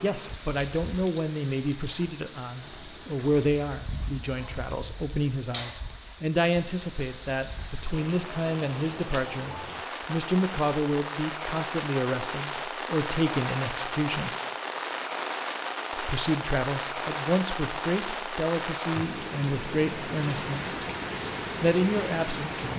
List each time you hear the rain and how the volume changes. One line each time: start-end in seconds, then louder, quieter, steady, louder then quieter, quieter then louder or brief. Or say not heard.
0.0-22.7 louder.